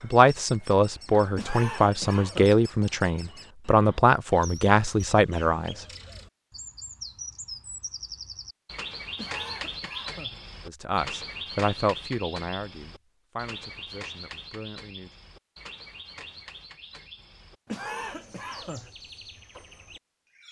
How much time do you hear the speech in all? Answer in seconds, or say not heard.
10 s.